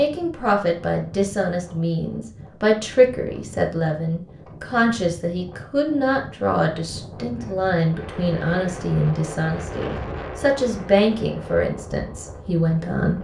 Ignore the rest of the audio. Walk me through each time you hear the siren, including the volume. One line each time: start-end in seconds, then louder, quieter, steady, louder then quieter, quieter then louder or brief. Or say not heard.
not heard.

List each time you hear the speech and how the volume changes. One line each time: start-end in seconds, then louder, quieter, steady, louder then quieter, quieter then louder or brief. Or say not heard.
0.0-13.1 steady.